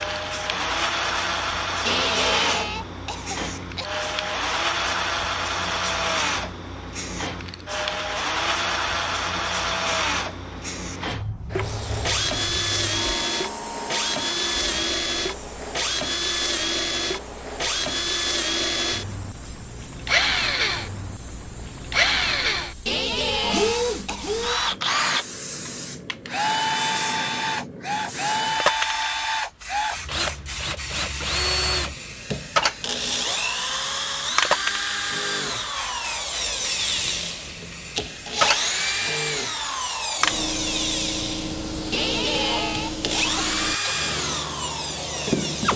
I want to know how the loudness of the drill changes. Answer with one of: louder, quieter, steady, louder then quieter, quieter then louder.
steady.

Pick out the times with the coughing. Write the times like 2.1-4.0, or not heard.
1.9-3.9, 22.9-24.4, 41.9-44.0.